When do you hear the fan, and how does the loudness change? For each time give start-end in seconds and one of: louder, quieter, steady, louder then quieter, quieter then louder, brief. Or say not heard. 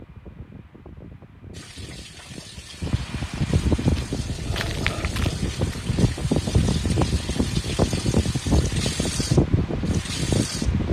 0.0-10.8 louder.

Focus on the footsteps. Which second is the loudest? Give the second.
5 s.